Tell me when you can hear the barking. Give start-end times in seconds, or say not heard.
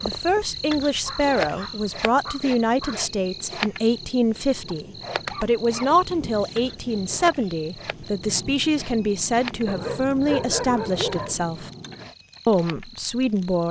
1.1-3.0, 4.7-6.5, 9.7-11.5.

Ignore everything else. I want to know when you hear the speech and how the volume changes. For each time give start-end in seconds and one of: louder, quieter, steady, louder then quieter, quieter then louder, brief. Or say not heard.
0.0-11.7 steady
12.4-13.6 brief.